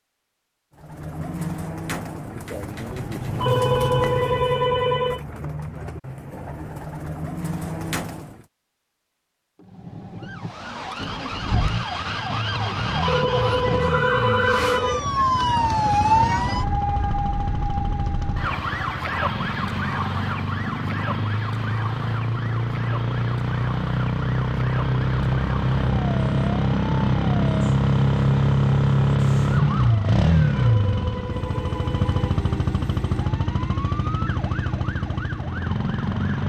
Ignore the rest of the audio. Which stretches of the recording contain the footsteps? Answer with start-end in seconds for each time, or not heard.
not heard.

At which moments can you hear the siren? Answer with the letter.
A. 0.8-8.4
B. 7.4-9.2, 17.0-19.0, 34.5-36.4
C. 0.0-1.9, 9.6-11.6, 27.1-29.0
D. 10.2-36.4
D.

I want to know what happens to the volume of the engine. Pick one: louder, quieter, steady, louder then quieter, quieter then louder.
louder then quieter.